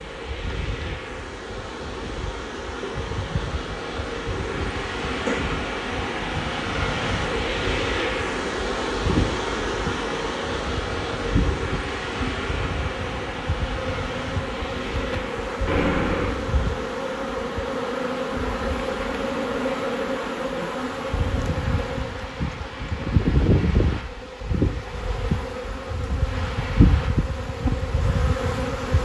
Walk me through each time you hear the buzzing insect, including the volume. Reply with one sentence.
The buzzing insect can be heard from 0.2 to 29.0 s, getting louder.